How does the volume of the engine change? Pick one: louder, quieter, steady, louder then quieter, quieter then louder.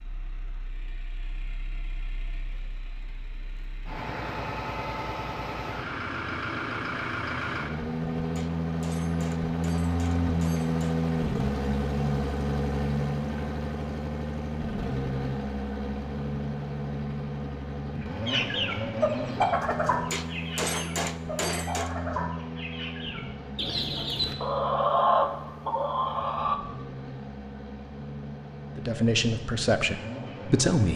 louder then quieter.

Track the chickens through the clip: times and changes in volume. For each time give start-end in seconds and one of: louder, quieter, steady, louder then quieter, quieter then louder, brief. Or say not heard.
18.2-26.6 quieter then louder.